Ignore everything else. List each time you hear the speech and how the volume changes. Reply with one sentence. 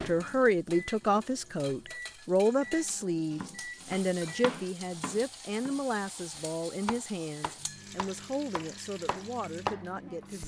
The speech can be heard from 0.0 to 10.4 s, getting quieter.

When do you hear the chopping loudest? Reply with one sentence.
The volume of the chopping peaks at 10 seconds.